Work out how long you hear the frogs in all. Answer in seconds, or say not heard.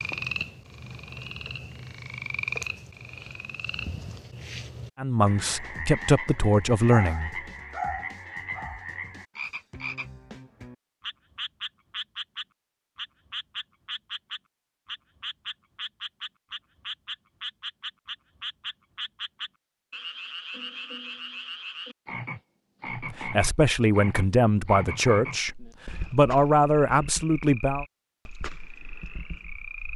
30 s.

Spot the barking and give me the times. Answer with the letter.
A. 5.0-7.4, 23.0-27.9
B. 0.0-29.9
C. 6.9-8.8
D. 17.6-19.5
C.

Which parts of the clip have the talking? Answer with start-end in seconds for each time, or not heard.
5.0-7.4, 23.0-27.9.